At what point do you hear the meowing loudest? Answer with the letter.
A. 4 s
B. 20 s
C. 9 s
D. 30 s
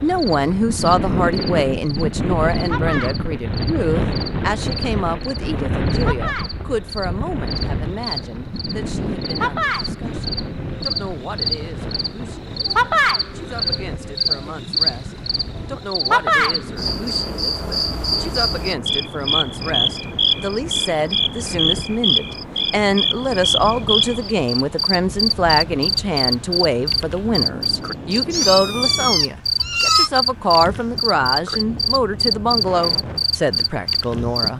D.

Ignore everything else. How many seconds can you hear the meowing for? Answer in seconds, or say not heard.
2 s.